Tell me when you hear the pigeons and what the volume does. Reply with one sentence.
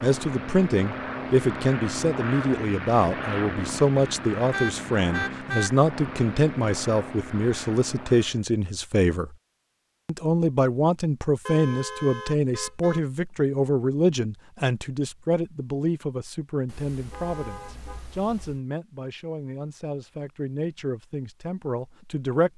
You can't hear the pigeons here.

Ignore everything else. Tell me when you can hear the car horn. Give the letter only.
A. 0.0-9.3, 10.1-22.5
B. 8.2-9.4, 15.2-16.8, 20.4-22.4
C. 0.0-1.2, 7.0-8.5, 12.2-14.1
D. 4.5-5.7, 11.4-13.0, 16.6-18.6
D.